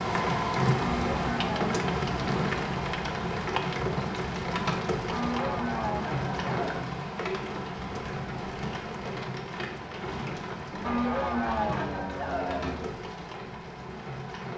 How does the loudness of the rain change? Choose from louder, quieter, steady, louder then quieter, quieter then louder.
quieter.